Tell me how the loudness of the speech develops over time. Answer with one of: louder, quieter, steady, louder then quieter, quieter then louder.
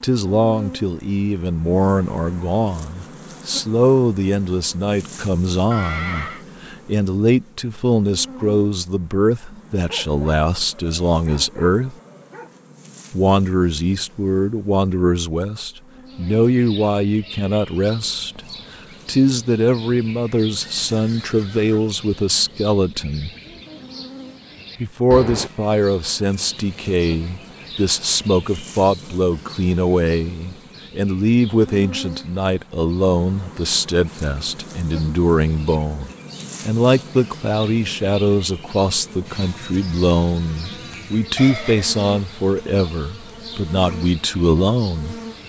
steady.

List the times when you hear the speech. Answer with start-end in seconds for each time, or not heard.
0.0-11.9, 13.1-18.4, 19.1-23.3, 24.8-45.1.